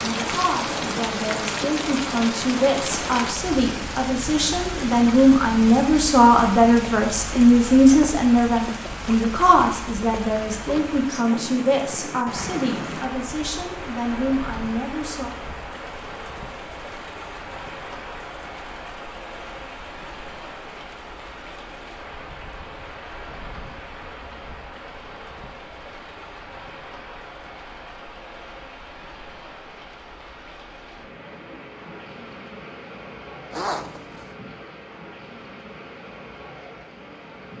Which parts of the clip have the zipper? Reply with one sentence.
The zipper can be heard from 33.5 to 34.2 s.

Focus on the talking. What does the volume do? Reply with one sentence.
The volume of the talking goes up, then down.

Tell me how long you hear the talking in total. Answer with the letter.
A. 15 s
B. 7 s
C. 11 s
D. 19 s
A.